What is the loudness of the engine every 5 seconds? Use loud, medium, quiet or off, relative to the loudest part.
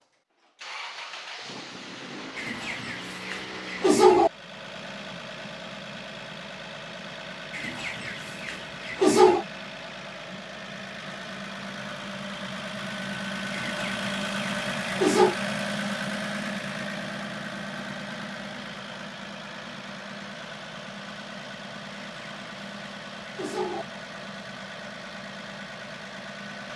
medium, medium, loud, loud, medium, medium.